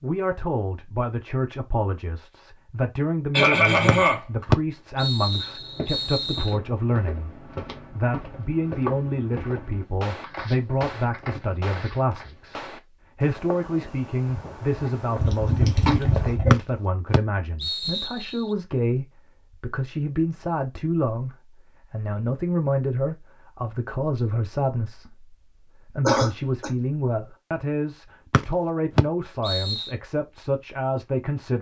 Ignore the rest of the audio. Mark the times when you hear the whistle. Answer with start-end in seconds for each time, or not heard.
3.9-6.5, 16.5-18.4, 28.3-29.9.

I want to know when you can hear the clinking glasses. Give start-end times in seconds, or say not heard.
not heard.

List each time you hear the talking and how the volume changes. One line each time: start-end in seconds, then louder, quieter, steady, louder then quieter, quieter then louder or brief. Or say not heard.
0.0-31.5 steady.